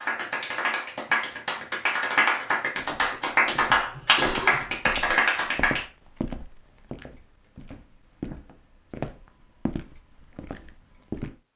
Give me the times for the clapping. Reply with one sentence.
You can hear the clapping from 0.0 to 5.8 s.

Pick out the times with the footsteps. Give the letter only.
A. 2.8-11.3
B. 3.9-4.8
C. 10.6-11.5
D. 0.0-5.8
A.